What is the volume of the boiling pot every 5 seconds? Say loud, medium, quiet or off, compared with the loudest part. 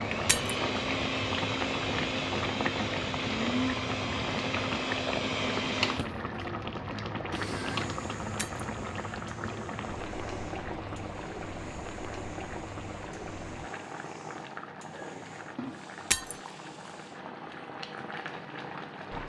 loud, loud, medium, medium.